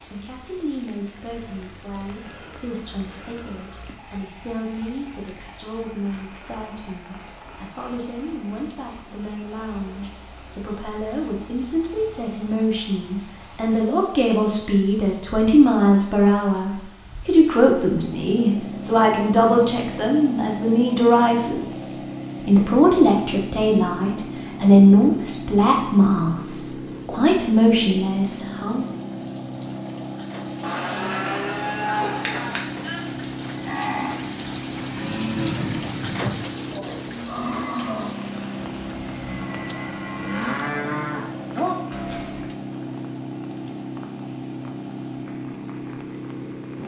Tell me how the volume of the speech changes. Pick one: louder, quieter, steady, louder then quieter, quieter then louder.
louder.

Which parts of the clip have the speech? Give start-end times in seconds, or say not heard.
0.1-28.9.